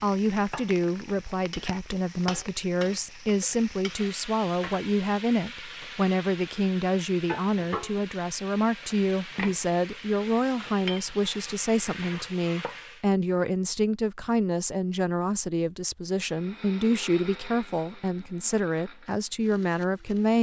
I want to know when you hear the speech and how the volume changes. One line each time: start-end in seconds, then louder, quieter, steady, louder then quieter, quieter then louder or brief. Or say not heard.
0.0-20.3 steady.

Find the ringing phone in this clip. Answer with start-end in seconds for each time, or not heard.
not heard.